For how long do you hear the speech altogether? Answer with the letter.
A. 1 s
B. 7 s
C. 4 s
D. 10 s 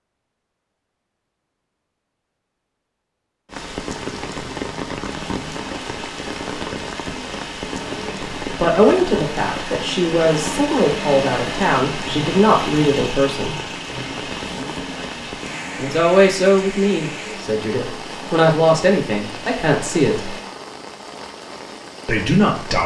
D.